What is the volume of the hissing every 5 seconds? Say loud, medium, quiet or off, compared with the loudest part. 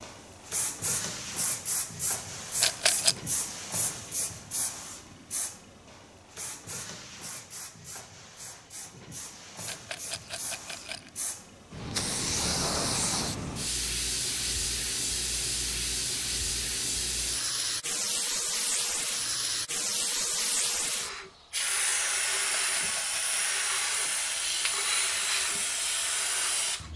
medium, quiet, loud, loud, loud, loud.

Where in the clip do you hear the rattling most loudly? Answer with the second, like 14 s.
3 s.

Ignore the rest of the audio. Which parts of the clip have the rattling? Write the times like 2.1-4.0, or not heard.
2.6-3.1, 9.7-11.1, 22.3-23.6.